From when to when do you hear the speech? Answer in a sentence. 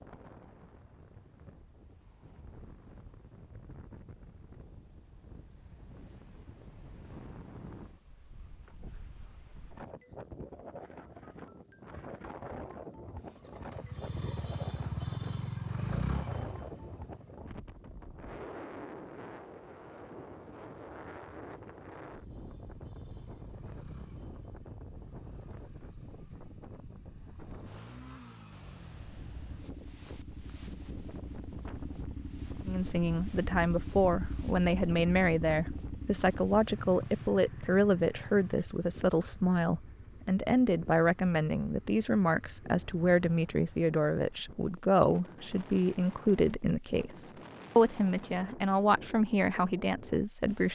The speech can be heard from 32.6 to 50.7 s.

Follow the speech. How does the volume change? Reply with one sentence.
The volume of the speech stays about the same.